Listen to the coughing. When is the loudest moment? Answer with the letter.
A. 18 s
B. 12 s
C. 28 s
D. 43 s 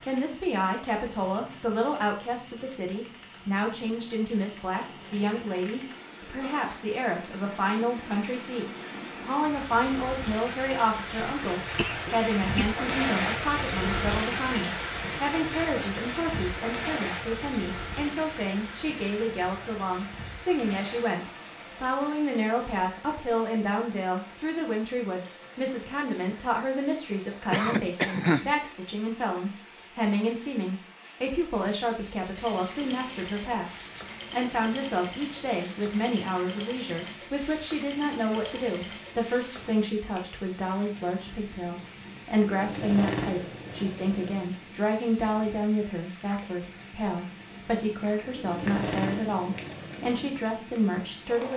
C.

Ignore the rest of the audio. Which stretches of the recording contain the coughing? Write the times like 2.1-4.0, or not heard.
11.1-12.7, 27.5-28.6.